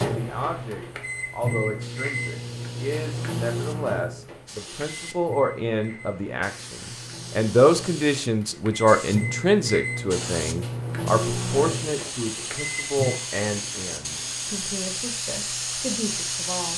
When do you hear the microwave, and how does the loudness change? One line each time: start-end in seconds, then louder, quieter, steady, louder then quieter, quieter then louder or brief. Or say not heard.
0.0-13.2 quieter then louder.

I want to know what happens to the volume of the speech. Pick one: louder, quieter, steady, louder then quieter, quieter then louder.
louder then quieter.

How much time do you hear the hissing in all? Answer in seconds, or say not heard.
17 s.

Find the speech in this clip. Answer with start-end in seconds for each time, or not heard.
0.0-16.7.